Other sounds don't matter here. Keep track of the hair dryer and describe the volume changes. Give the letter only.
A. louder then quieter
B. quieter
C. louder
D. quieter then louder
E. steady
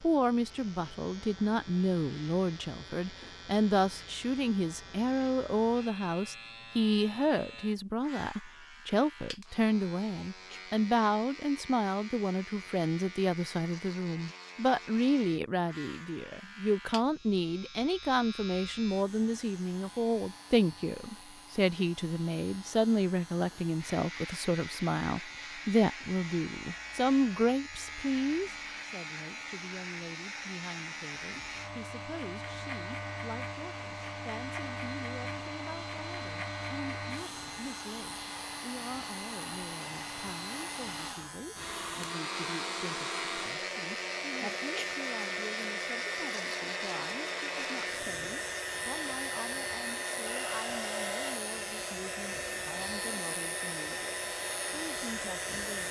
C.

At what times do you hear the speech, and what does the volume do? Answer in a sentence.
You can hear the speech from 0.0 to 55.8 s, getting quieter.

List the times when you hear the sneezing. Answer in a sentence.
You can hear the sneezing from 10.1 to 10.7 s and from 44.4 to 44.9 s.